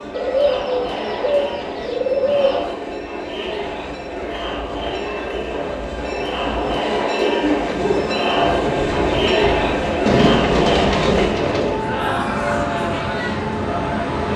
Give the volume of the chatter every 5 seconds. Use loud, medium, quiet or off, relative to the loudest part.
medium, loud, loud.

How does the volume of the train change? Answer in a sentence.
The volume of the train goes up.